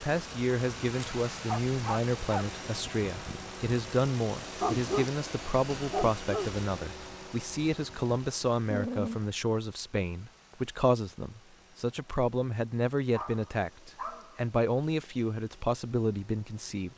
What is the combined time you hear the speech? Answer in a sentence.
The speech can be heard for 17 seconds in total.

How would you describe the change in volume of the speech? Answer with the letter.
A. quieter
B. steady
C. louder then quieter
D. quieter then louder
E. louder
B.